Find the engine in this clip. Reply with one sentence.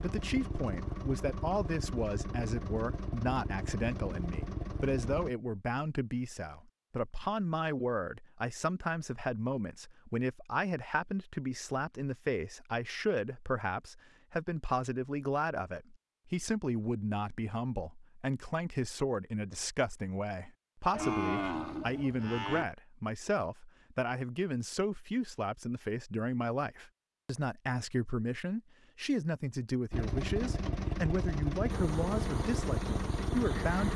You can hear the engine from 0.0 to 5.3 s and from 29.9 to 33.9 s.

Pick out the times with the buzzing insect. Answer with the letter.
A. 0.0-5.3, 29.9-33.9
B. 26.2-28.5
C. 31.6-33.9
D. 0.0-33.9
C.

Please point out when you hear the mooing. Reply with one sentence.
The mooing can be heard from 20.9 to 22.6 s.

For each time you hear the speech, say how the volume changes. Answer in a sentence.
You can hear the speech from 0.0 to 33.9 s, at a steady volume.